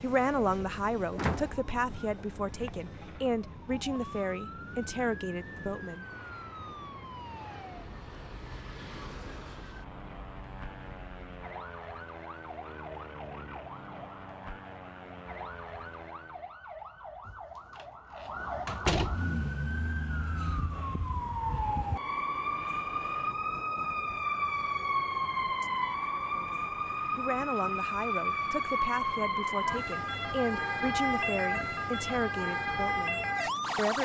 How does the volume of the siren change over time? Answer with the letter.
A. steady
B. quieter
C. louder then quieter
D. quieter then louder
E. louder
E.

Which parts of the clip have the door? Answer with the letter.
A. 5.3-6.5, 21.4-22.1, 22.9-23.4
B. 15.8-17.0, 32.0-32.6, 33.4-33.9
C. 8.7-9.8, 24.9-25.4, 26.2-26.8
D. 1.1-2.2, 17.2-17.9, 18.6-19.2
D.